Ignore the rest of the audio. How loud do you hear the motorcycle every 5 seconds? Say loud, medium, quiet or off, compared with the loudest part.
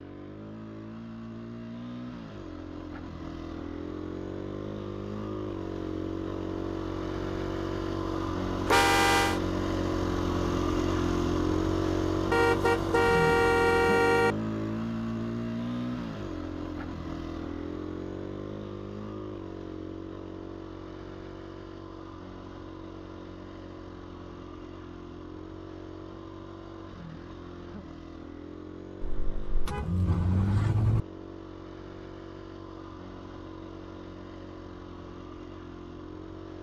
medium, loud, loud, medium, quiet, quiet, quiet, quiet.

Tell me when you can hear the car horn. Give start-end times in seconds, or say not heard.
8.7-9.4, 12.3-14.3, 29.0-31.0.